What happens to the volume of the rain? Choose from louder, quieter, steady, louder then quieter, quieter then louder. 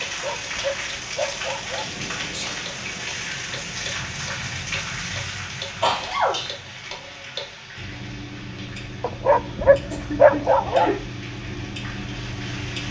quieter.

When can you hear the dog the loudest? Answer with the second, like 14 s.
10 s.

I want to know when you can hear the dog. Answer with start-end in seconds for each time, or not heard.
0.0-1.9, 9.0-10.9.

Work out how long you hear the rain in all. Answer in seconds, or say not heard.
13 s.